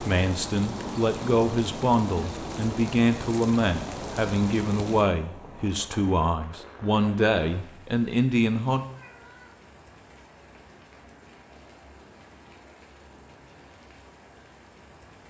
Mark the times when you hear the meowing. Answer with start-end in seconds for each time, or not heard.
8.8-9.6.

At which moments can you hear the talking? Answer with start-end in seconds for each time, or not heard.
0.0-8.8.